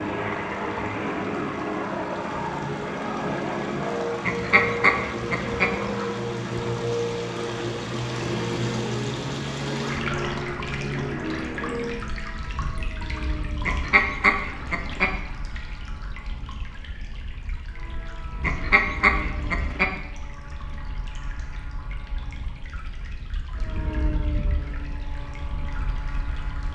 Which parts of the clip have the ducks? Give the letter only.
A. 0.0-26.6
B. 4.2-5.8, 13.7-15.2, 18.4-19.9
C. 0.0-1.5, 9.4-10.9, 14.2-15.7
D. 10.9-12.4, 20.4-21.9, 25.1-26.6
B.